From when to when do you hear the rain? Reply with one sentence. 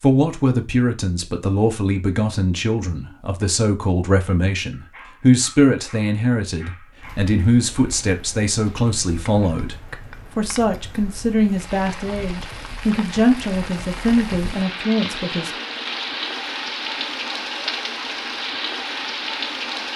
The rain can be heard from 7.0 to 19.9 s.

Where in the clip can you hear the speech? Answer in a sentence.
The speech can be heard from 0.0 to 15.5 s.